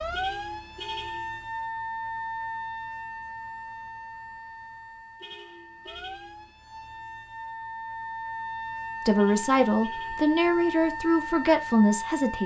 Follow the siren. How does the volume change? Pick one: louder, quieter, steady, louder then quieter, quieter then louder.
quieter then louder.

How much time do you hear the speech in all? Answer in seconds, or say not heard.
3 s.